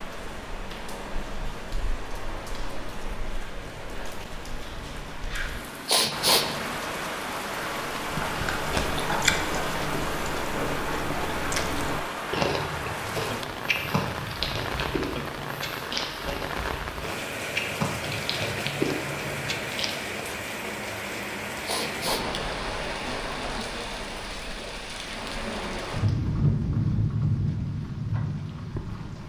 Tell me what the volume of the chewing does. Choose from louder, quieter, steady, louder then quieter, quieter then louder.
quieter then louder.